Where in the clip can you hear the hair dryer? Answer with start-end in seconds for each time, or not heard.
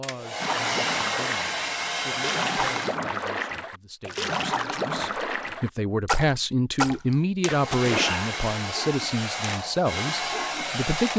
0.0-3.0, 7.5-11.1.